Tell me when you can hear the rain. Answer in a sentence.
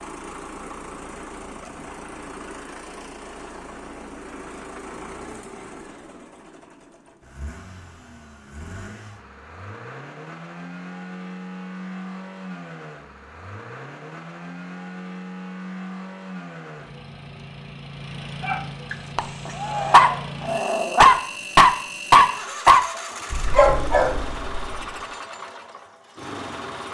You can't hear the rain here.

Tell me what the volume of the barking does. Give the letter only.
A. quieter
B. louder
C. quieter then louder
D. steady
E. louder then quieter
E.